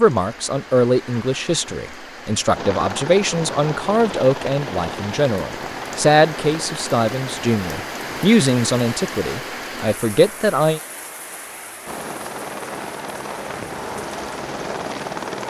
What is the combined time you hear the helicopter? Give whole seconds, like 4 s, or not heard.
9 s.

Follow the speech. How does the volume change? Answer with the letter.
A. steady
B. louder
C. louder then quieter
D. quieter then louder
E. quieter
A.